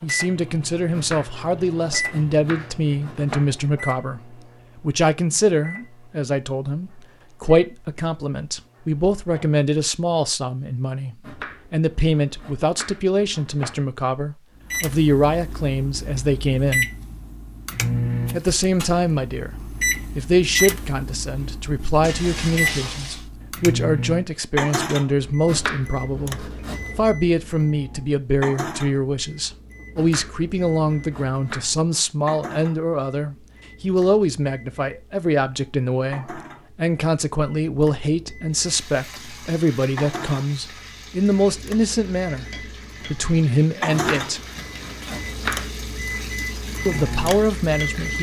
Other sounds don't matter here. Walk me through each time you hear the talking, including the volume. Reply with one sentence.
You can hear the talking from 0.0 to 16.9 s, at a steady volume; briefly from 18.3 to 19.6 s; from 20.1 to 44.4 s, at a steady volume; and briefly from 46.9 to 48.1 s.